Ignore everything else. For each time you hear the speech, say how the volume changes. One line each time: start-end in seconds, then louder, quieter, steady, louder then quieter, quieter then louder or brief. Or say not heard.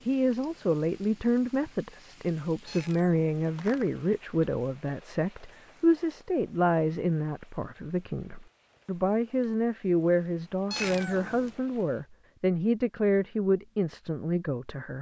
0.1-14.9 steady.